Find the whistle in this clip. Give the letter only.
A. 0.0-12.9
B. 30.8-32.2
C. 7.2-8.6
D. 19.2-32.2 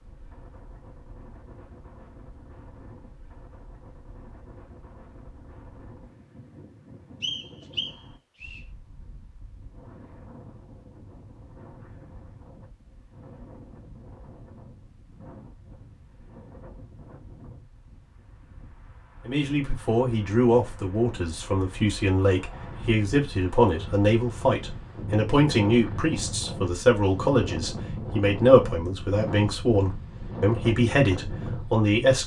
C.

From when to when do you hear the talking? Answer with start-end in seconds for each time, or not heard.
19.2-32.2.